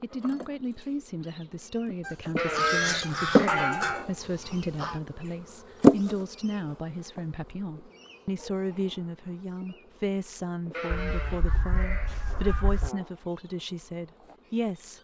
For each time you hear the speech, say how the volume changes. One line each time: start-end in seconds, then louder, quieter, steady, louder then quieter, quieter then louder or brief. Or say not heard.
0.0-14.9 steady.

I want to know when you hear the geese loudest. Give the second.
3 s.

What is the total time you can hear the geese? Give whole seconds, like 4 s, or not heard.
5 s.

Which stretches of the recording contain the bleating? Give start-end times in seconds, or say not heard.
2.4-4.2, 10.7-12.5.